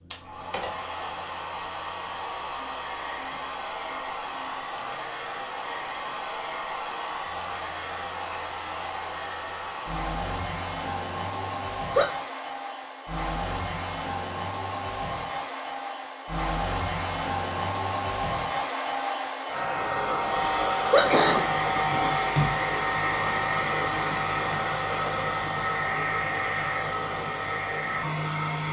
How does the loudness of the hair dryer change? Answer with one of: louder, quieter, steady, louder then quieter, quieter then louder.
louder.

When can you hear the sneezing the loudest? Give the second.
21 s.